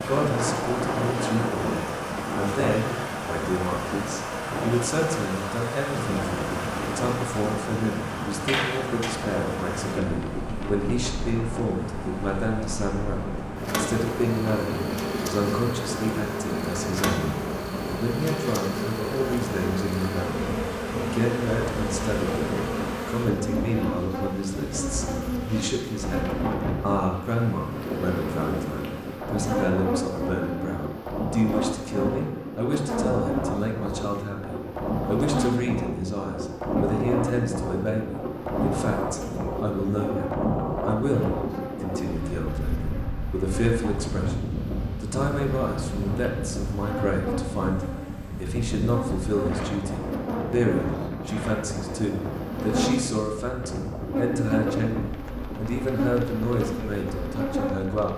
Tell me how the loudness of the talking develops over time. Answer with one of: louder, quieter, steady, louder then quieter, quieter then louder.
steady.